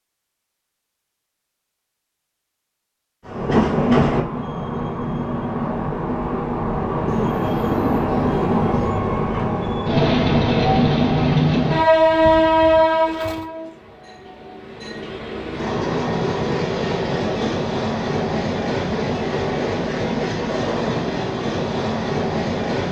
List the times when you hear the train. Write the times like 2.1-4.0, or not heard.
3.2-22.8.